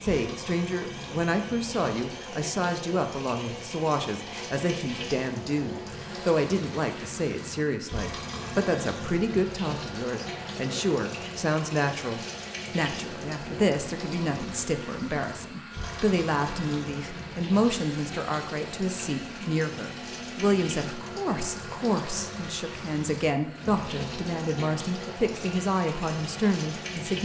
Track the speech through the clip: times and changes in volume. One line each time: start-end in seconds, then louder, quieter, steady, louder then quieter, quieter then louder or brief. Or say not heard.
0.0-27.1 steady.